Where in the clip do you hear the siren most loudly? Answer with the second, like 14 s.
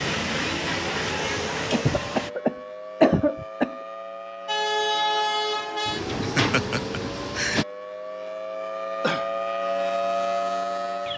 10 s.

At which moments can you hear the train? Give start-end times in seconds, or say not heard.
0.0-2.3, 4.5-7.7.